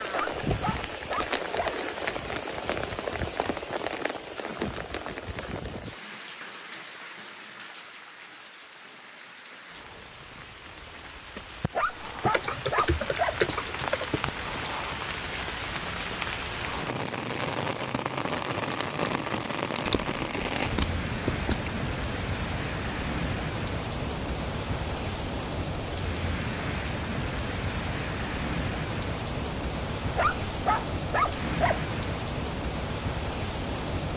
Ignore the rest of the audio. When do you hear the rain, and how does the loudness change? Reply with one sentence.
You can hear the rain from 0.0 to 34.1 s, getting quieter then louder.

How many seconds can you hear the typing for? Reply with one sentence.
The typing can be heard for 4 seconds in total.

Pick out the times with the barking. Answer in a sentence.
You can hear the barking from 0.1 to 1.8 s, from 11.8 to 13.4 s and from 30.1 to 31.8 s.